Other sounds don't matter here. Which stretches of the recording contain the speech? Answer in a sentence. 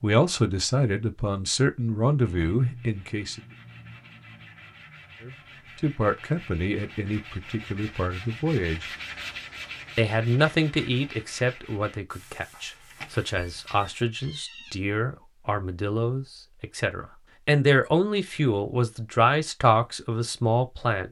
You can hear the speech from 0.0 to 3.4 s, from 5.2 to 8.9 s and from 9.9 to 21.0 s.